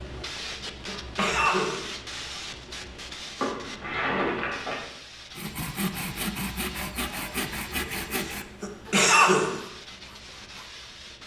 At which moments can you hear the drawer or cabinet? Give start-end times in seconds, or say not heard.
3.4-4.8.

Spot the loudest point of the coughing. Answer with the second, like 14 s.
9 s.